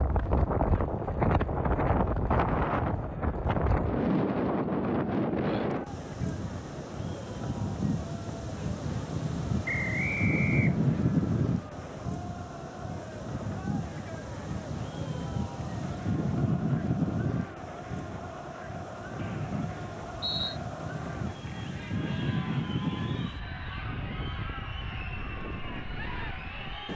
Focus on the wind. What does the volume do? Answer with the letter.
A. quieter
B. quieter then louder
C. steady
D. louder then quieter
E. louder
A.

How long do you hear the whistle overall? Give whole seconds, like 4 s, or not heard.
3 s.